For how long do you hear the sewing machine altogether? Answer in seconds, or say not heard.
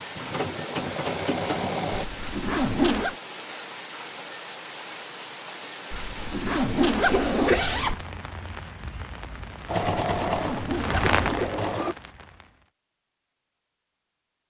4 s.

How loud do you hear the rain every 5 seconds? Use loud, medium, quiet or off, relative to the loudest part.
medium, medium, loud.